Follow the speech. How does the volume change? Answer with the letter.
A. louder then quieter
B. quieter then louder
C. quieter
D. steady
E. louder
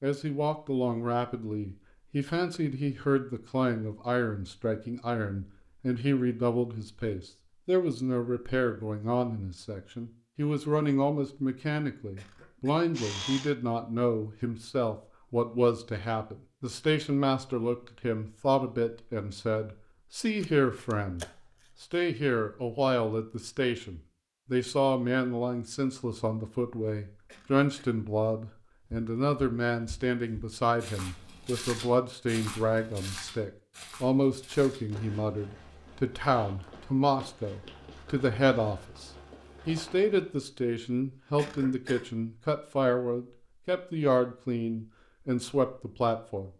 D.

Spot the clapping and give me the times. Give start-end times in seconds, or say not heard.
not heard.